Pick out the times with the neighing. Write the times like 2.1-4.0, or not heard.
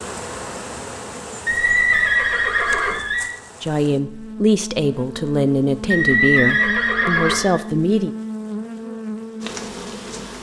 1.4-3.3, 5.9-7.6.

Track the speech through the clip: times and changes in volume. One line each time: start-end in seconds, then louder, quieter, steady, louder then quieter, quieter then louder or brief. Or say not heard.
3.6-8.2 steady.